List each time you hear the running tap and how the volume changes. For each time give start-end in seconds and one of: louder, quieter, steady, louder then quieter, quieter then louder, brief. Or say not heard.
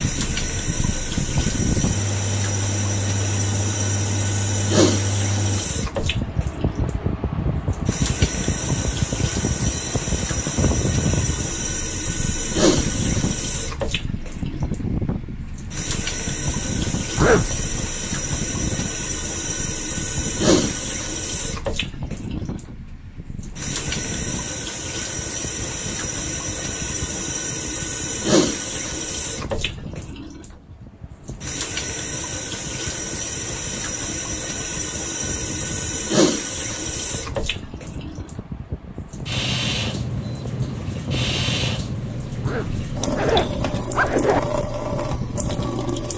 0.0-46.1 steady.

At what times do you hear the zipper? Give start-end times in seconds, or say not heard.
17.1-17.8, 42.4-44.4.